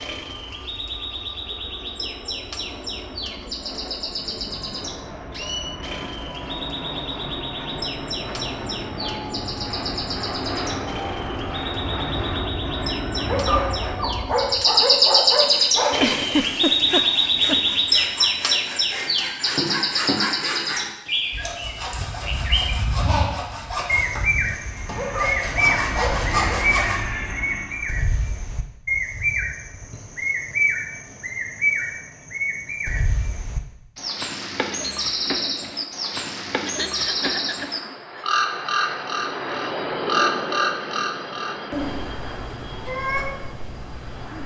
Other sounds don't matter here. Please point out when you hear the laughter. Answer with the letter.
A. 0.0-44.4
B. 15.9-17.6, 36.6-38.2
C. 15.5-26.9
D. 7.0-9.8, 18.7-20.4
B.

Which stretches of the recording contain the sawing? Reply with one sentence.
You can hear the sawing from 15.5 to 26.9 s.